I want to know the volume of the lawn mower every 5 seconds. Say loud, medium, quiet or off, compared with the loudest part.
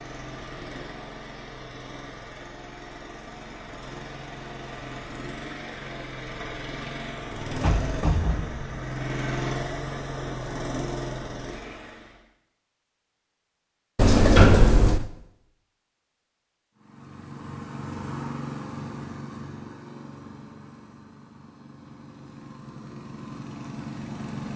medium, loud, loud, loud, medium.